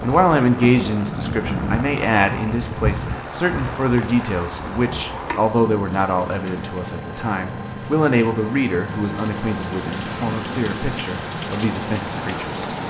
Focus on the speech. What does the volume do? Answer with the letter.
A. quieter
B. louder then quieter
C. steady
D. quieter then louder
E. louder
A.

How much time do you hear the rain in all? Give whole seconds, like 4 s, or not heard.
13 s.